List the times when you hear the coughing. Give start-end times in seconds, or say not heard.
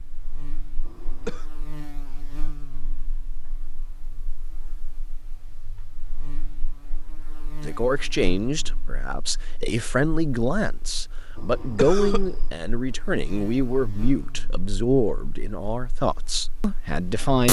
0.8-1.4, 11.3-12.4.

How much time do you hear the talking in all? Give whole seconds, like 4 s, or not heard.
10 s.